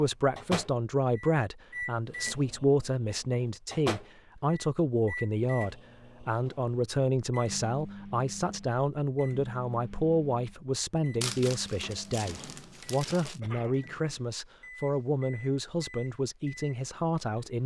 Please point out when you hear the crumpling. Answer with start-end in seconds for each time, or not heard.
11.2-13.4.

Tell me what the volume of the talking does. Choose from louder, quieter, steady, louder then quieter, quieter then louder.
steady.